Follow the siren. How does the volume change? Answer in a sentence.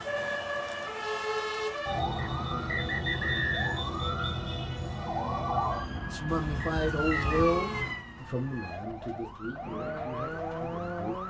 The volume of the siren goes down.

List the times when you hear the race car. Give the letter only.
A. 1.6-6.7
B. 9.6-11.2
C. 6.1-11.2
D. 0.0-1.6
B.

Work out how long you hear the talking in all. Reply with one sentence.
You can hear the talking for 5 seconds altogether.